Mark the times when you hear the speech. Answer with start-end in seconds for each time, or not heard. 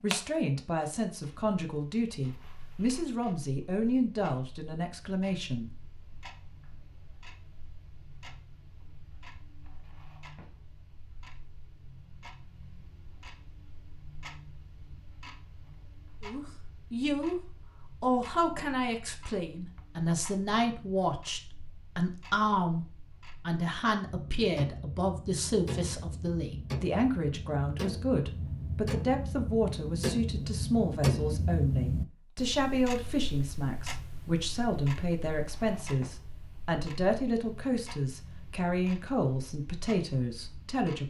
0.0-5.8, 16.2-41.0.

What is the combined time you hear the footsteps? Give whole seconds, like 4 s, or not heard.
not heard.